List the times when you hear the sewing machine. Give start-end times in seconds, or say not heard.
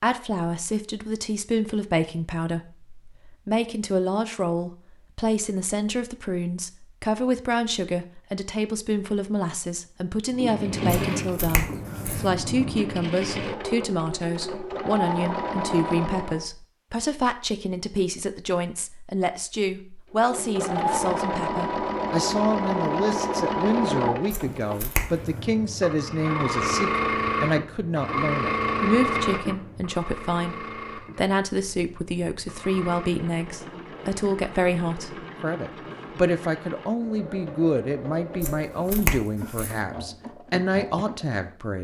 10.3-16.4, 20.1-41.5.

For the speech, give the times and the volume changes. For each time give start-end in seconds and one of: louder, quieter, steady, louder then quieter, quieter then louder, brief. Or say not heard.
0.0-41.8 steady.